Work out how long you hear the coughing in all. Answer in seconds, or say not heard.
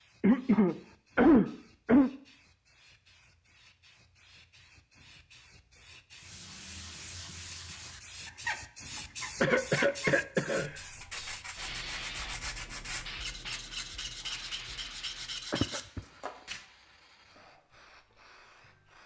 4 s.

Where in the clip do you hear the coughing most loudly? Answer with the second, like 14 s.
1 s.